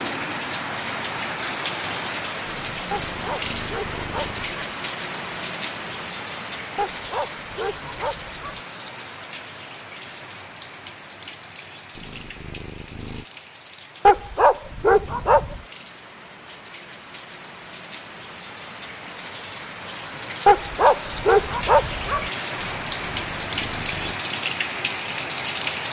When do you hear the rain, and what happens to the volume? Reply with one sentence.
You can hear the rain from 0.0 to 25.8 s, getting quieter then louder.